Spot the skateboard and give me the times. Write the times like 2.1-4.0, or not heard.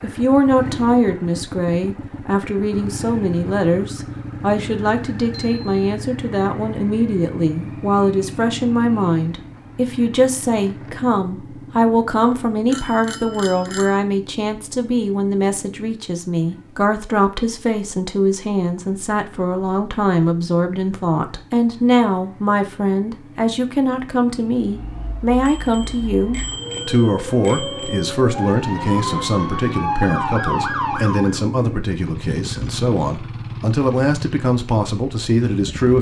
not heard.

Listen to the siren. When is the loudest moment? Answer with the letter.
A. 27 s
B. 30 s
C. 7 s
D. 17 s
B.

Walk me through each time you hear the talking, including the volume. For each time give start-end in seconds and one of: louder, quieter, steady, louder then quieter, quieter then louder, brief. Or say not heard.
0.0-35.9 steady.